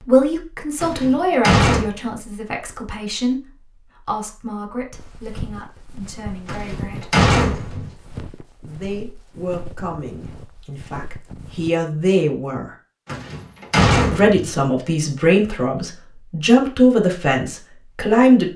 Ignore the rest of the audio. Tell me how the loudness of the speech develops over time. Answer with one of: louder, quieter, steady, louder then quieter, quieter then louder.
quieter then louder.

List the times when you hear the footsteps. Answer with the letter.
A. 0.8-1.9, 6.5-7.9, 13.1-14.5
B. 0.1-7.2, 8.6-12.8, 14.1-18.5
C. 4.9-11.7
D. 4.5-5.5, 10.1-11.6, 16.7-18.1
C.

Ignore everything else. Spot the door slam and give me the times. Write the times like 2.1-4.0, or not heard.
0.8-1.9, 6.5-7.9, 13.1-14.5.